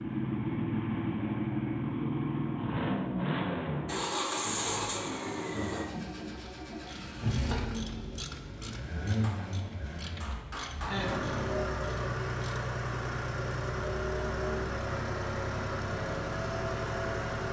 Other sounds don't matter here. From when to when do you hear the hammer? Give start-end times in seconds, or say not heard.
9.2-11.2.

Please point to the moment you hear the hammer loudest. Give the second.
11 s.